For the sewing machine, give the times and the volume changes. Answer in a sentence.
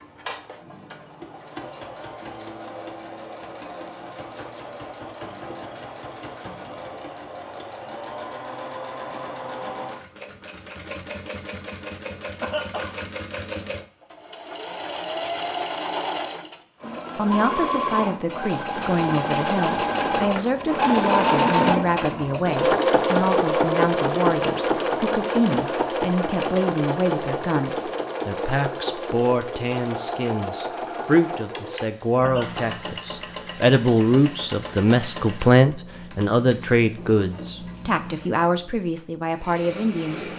The sewing machine can be heard from 0.0 to 40.3 s, getting louder then quieter.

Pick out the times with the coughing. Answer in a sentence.
You can hear the coughing from 12.4 to 13.0 s and from 32.2 to 32.7 s.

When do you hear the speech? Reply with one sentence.
The speech can be heard from 17.1 to 40.3 s.